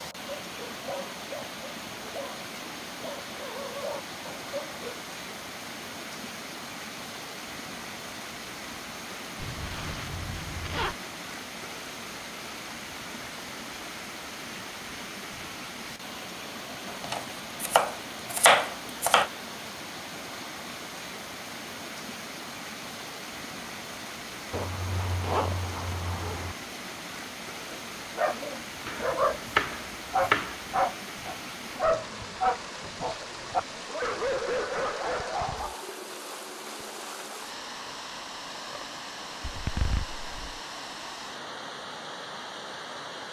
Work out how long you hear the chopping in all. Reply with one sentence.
You can hear the chopping for 4 seconds altogether.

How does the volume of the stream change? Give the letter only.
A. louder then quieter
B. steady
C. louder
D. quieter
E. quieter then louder
B.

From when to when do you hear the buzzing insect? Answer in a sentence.
The buzzing insect can't be heard in this clip.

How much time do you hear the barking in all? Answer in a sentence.
You can hear the barking for 13 seconds altogether.